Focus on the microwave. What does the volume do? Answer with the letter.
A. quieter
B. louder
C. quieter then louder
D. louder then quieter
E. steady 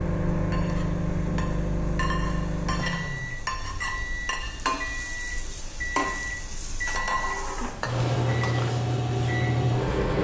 C.